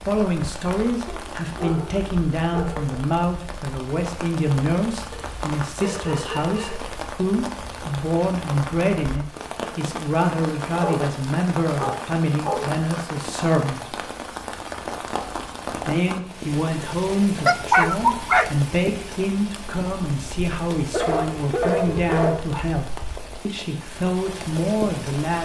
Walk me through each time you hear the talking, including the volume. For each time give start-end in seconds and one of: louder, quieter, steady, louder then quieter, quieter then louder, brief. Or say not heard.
0.1-13.9 steady
15.8-25.4 steady.